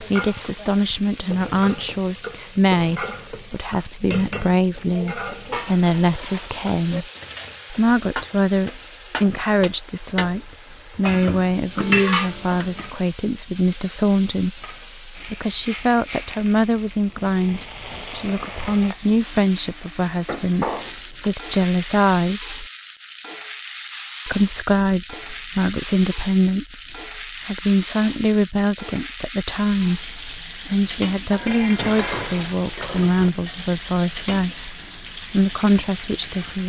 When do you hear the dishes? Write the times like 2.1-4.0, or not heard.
5.3-7.0, 11.1-12.9, 20.1-21.4, 31.3-33.3.